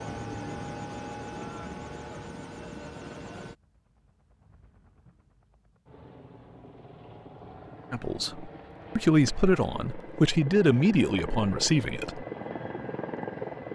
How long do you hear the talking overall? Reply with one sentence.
The talking can be heard for 4 seconds in total.